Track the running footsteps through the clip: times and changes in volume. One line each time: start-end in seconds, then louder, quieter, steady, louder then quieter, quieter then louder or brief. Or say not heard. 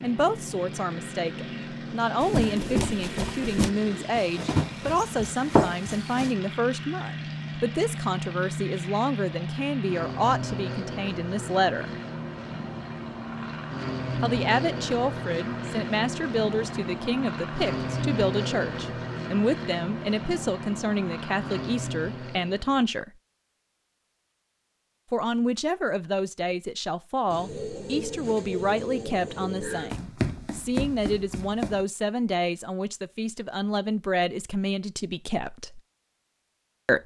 2.2-6.3 quieter then louder
29.9-31.9 brief.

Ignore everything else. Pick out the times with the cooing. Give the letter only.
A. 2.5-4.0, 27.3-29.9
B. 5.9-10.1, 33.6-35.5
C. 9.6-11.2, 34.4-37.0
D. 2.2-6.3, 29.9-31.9
A.